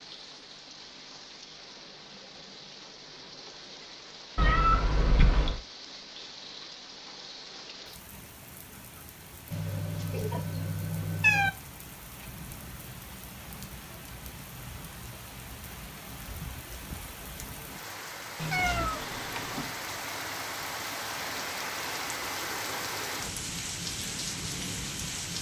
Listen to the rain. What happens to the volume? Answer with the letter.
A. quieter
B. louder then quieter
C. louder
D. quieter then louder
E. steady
C.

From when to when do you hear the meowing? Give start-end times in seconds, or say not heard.
4.3-5.6, 9.5-11.5, 18.4-19.7.